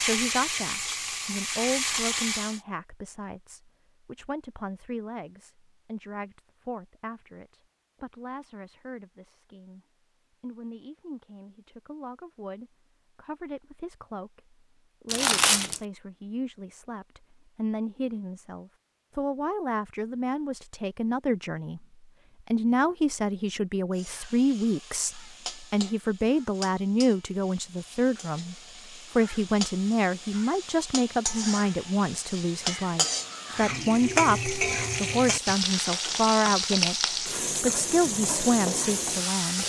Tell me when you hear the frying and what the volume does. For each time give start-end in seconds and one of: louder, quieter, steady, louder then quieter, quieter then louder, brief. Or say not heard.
0.0-2.6 brief
23.9-39.6 louder.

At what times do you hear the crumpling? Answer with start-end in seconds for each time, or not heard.
15.1-15.8.